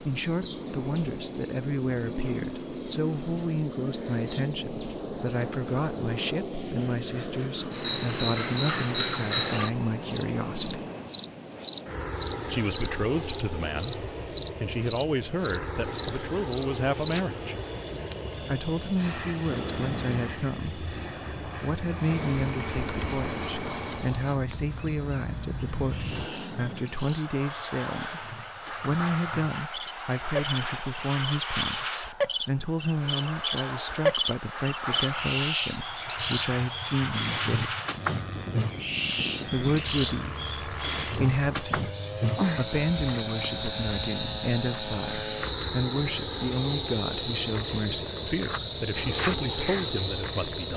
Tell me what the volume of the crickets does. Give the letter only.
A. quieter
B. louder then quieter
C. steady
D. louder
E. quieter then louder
E.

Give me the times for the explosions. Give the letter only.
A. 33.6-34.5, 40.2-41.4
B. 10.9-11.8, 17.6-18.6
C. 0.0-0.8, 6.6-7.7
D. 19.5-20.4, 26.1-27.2
D.